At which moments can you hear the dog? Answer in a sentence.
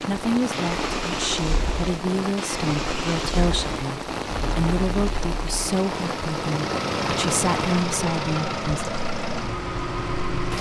The dog can't be heard in this clip.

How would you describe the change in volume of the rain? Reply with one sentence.
The loudness of the rain goes down.